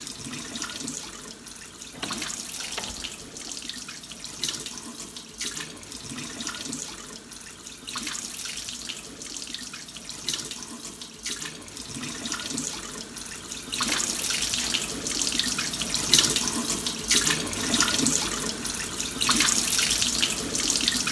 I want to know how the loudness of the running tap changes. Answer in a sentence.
The volume of the running tap goes up.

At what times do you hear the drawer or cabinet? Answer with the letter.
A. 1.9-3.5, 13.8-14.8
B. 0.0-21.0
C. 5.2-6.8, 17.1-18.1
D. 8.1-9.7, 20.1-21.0
A.